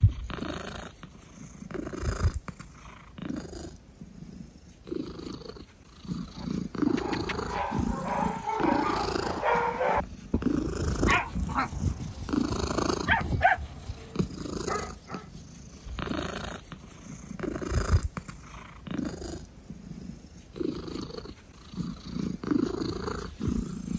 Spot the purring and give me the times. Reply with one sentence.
The purring can be heard from 0.0 to 23.9 s.